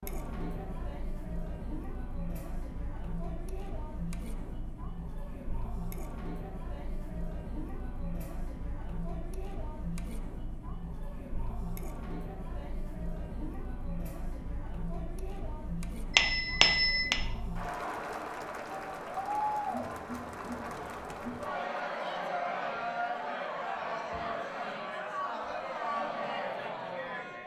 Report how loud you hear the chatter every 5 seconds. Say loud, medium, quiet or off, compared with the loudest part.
medium, medium, medium, loud, loud, loud.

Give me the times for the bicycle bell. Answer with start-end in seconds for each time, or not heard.
16.1-17.2.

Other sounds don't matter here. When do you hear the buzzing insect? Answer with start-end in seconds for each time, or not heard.
not heard.